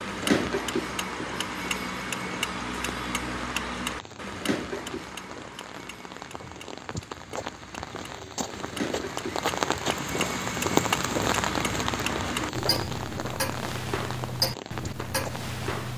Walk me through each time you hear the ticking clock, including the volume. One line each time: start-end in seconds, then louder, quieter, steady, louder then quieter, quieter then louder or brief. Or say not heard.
0.0-15.9 quieter then louder.